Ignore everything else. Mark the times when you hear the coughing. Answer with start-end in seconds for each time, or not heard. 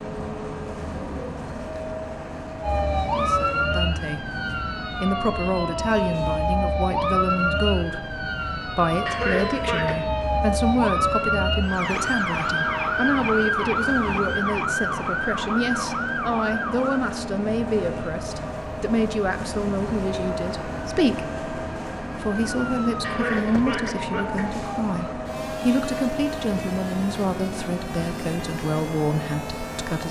9.1-10.0, 23.0-24.7.